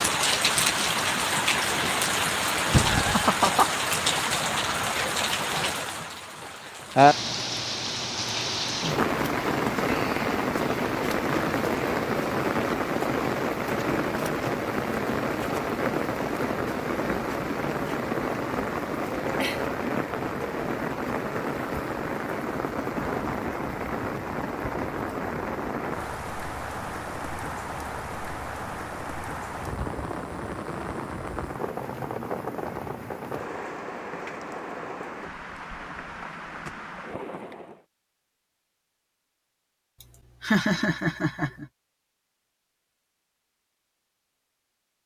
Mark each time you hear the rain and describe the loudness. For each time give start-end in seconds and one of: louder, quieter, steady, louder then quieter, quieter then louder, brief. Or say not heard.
0.0-37.9 quieter.